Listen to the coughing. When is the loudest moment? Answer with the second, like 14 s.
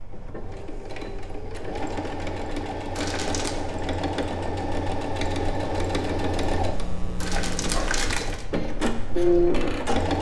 8 s.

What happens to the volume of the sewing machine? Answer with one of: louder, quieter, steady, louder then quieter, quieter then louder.
louder.